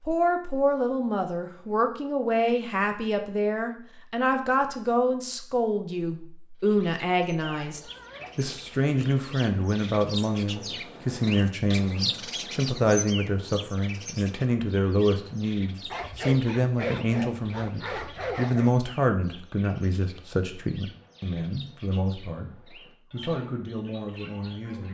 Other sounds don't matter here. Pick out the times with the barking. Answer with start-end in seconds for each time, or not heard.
7.6-9.3, 15.9-18.8.